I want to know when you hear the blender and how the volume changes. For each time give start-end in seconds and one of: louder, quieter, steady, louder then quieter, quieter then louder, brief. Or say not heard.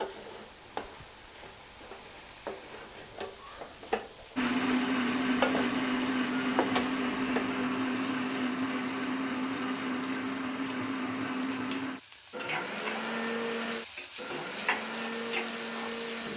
4.3-16.3 quieter.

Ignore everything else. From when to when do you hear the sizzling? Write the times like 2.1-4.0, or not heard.
0.0-16.3.